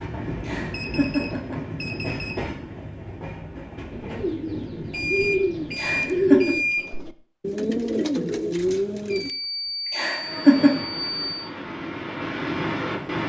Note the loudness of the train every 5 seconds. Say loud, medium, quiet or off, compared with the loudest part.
loud, medium, loud.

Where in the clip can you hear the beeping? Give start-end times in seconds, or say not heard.
0.7-2.5, 4.9-6.9, 9.1-11.5.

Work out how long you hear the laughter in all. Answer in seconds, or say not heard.
3 s.